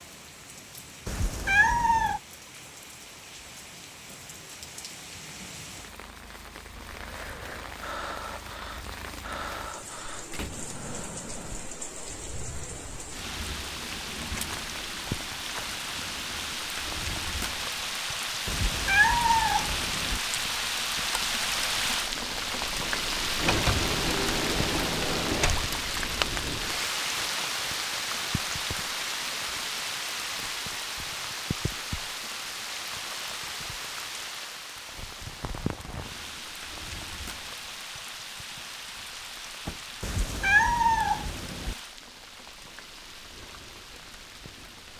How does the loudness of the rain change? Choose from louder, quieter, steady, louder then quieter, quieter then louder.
louder then quieter.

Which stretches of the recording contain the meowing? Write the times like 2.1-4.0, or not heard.
1.1-2.2, 18.4-20.2, 40.0-41.8.